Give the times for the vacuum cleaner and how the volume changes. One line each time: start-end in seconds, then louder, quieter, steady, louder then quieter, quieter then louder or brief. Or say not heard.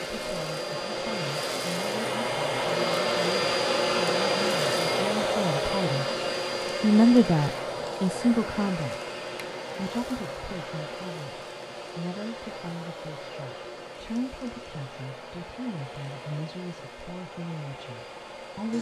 0.0-18.7 quieter.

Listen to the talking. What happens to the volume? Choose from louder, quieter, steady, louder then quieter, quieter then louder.
louder then quieter.